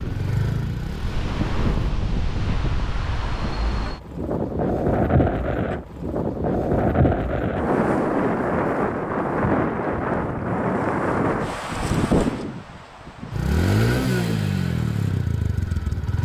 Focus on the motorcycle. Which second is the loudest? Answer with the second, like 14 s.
14 s.